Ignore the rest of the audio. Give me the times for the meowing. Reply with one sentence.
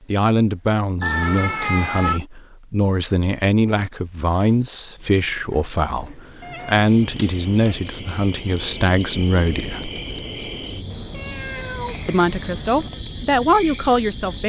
You can hear the meowing from 1.0 to 2.2 s, from 6.4 to 7.8 s and from 10.9 to 12.9 s.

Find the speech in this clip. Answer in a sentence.
You can hear the speech from 0.1 to 9.9 s and from 12.1 to 14.4 s.